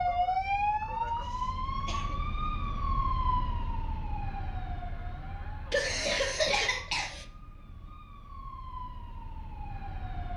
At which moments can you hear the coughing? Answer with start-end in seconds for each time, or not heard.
1.1-2.2, 5.7-7.2.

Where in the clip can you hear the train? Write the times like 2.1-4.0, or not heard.
not heard.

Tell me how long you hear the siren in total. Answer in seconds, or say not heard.
10 s.